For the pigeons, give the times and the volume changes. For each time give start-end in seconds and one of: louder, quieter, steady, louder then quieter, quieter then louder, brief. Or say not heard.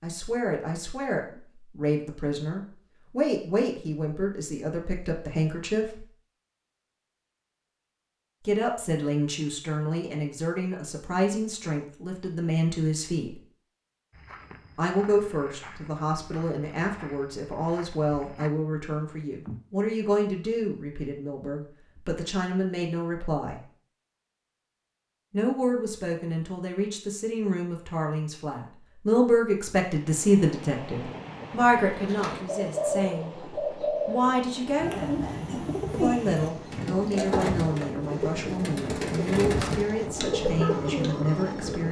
31.9-41.8 steady.